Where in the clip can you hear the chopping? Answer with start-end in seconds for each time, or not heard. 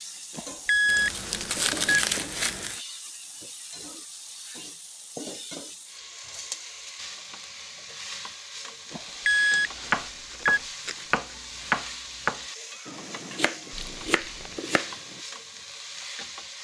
9.9-15.2.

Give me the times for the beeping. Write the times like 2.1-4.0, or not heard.
0.3-2.0, 8.9-11.1.